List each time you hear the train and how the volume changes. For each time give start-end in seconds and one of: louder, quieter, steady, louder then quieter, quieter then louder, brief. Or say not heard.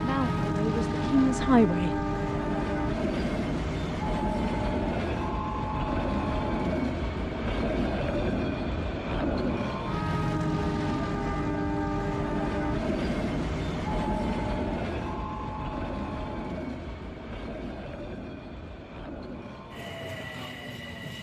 0.0-21.1 quieter.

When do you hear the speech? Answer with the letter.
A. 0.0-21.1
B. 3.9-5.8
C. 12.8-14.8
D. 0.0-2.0
D.